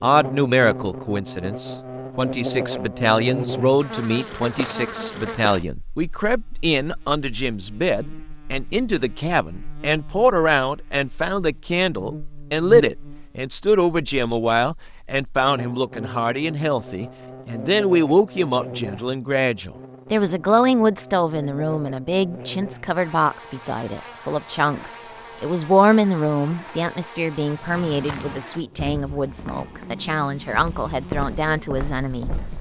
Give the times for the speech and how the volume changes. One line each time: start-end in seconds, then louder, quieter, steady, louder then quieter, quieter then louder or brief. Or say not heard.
0.0-32.3 steady.